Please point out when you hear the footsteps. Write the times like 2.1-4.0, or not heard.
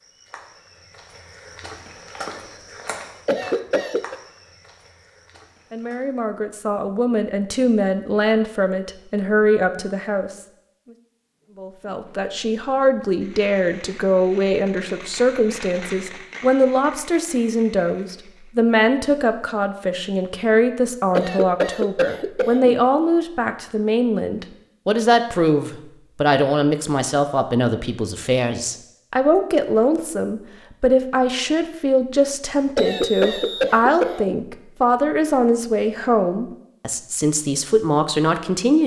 0.0-6.2.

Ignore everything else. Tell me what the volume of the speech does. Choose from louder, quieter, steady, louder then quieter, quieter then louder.
steady.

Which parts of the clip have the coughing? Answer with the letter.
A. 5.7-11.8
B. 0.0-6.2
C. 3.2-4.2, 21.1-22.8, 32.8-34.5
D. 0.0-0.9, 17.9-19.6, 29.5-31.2
C.